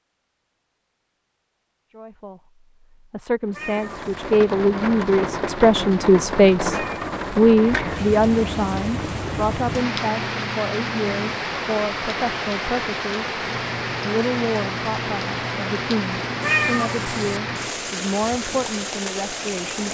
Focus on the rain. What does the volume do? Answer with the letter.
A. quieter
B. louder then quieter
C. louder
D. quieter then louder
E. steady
E.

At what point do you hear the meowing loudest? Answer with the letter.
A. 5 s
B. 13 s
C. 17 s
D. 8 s
C.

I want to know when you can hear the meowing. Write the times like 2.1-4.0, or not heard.
3.5-4.3, 6.7-7.3, 16.4-17.4.